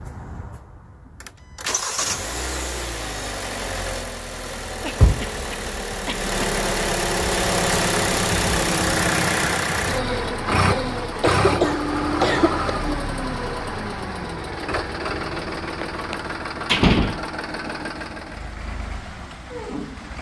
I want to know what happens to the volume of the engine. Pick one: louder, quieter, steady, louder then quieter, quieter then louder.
louder then quieter.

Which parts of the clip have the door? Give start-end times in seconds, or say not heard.
15.8-17.7.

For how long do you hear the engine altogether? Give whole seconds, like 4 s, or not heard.
20 s.